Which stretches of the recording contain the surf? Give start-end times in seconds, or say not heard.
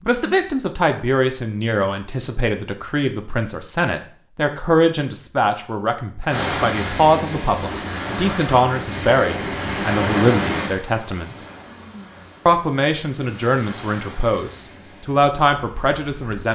6.2-16.5.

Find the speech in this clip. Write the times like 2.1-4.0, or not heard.
0.1-11.4, 12.4-16.5.